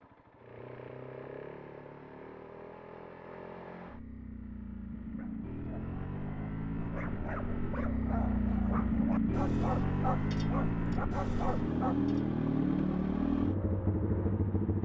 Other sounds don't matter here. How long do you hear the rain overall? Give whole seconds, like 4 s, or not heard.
not heard.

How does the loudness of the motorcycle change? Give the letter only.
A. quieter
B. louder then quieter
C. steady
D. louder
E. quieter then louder
D.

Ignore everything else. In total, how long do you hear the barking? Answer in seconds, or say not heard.
7 s.